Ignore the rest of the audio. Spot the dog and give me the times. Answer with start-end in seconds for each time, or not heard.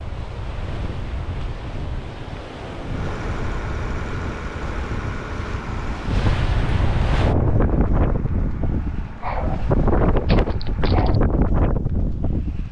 9.2-11.2.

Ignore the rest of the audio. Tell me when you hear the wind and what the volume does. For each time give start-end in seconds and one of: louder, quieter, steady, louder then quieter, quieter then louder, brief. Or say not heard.
0.0-12.6 louder.